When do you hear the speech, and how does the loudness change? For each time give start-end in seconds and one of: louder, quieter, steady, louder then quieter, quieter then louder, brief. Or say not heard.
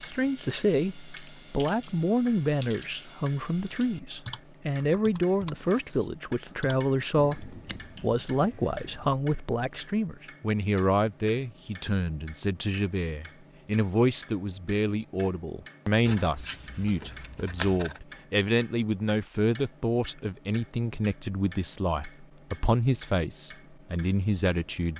0.0-24.9 steady.